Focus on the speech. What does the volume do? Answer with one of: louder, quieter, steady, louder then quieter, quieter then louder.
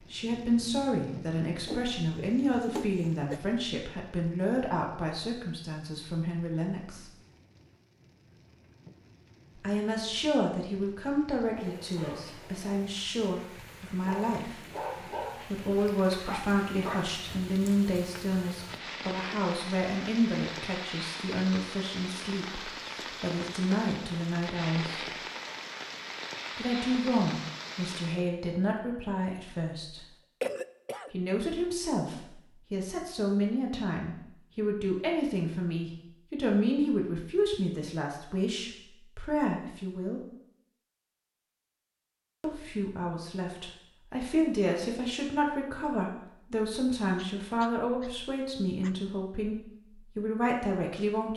steady.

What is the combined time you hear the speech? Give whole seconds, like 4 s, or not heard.
43 s.